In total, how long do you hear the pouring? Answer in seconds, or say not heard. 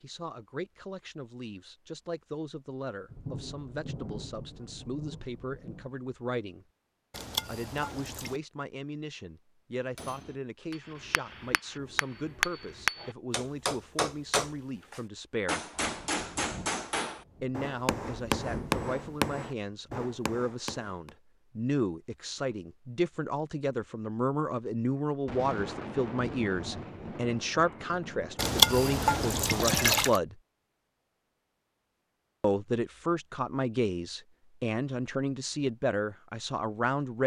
3 s.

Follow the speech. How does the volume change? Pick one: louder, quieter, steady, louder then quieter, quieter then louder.
louder.